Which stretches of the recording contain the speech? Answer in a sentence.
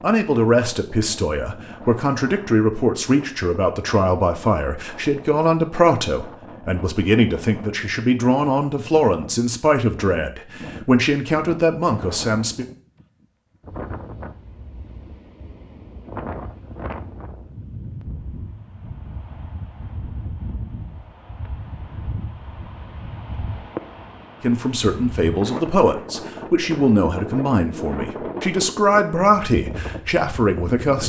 The speech can be heard from 0.0 to 12.7 s and from 24.4 to 31.0 s.